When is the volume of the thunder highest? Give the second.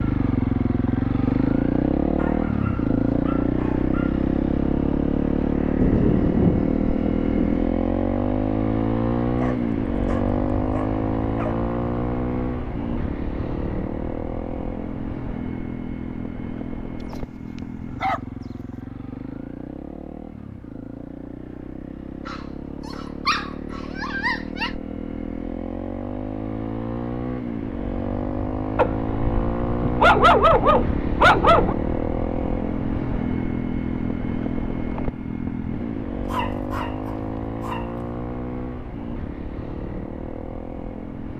6 s.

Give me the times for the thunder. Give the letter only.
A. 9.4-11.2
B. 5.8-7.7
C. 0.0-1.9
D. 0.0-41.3
B.